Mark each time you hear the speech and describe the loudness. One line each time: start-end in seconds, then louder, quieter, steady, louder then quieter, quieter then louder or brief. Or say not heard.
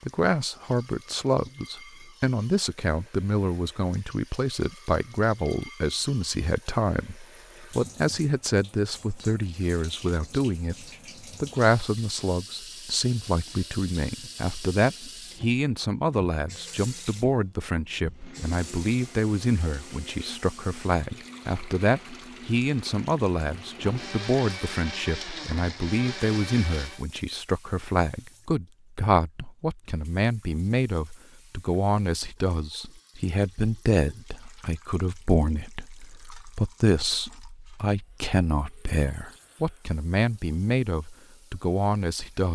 0.0-42.5 steady.